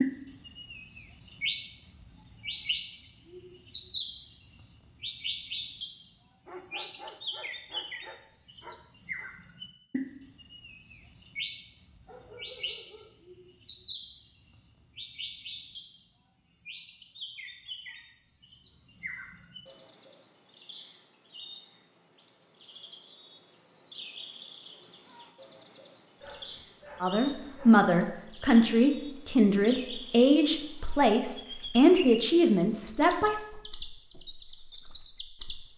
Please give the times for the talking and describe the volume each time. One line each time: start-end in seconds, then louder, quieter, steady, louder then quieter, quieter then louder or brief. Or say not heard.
27.0-33.4 steady.